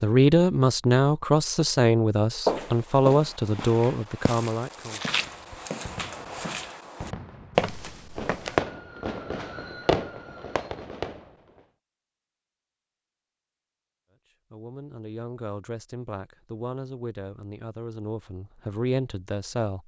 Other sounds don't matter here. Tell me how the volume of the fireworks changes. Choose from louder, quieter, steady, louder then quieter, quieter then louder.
louder then quieter.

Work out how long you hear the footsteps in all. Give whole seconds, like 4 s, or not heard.
6 s.